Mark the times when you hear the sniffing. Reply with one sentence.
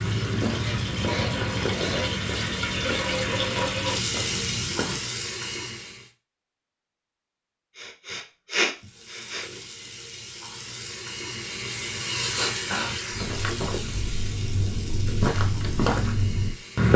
The sniffing can be heard from 0.3 to 2.0 s, from 7.8 to 9.4 s and from 12.3 to 13.0 s.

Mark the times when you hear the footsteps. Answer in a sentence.
The footsteps can be heard from 0.0 to 5.0 s and from 13.1 to 16.9 s.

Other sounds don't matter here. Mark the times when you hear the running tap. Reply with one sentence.
The running tap can be heard from 0.0 to 6.1 s and from 8.8 to 16.9 s.